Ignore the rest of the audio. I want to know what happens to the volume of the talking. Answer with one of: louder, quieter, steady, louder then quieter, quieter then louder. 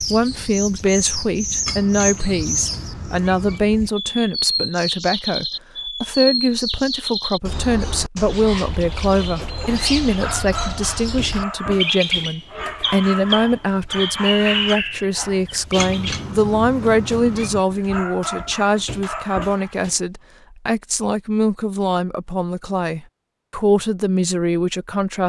steady.